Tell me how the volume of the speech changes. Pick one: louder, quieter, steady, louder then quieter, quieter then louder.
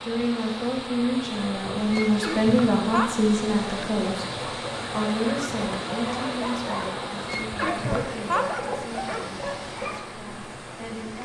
quieter.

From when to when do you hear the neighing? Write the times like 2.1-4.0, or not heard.
1.9-3.1, 7.2-8.4.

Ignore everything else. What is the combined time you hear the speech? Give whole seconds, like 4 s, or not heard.
11 s.